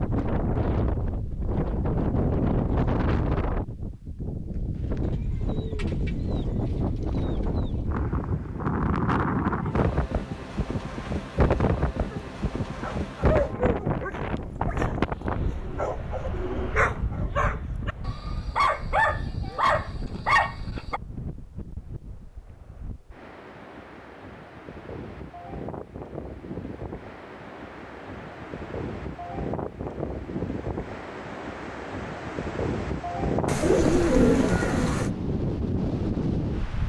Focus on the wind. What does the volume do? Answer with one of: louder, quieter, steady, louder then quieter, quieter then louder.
quieter then louder.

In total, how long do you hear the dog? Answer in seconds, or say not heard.
9 s.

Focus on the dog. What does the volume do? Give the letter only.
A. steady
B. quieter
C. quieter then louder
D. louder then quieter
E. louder
C.